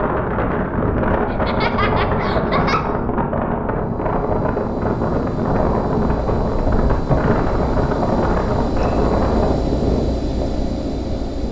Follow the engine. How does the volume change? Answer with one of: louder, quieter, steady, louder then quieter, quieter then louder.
louder.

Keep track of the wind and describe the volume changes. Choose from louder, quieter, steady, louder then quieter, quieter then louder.
steady.